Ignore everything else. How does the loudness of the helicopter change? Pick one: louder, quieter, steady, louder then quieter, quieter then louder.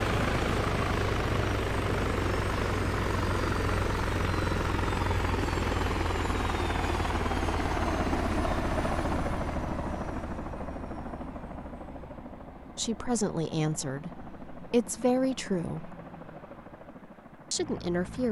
quieter.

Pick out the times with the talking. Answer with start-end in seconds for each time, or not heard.
12.8-15.9, 17.5-18.2.